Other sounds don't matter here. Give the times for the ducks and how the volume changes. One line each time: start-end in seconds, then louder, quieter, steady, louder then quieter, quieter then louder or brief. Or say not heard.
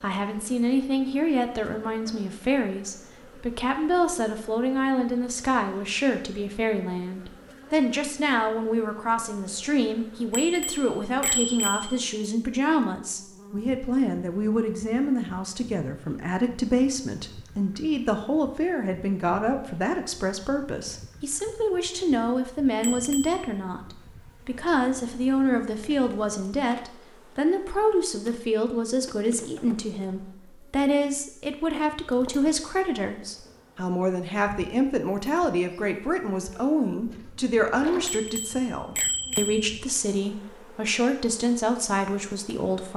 not heard.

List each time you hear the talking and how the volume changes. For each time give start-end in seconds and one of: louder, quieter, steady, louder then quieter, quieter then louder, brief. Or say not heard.
0.0-42.9 steady.